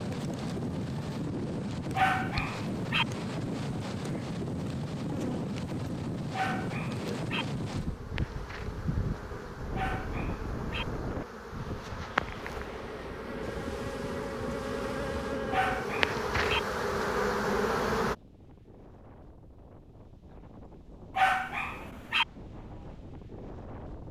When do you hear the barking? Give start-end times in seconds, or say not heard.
1.9-3.0, 6.3-7.5, 9.8-10.8, 15.5-16.6, 21.1-22.2.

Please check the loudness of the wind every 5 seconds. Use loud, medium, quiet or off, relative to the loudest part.
loud, loud, medium, quiet, quiet.